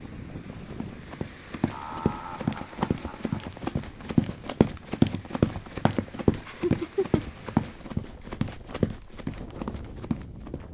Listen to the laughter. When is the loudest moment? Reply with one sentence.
The volume of the laughter peaks at 7 seconds.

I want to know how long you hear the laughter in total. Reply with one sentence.
You can hear the laughter for 3 seconds altogether.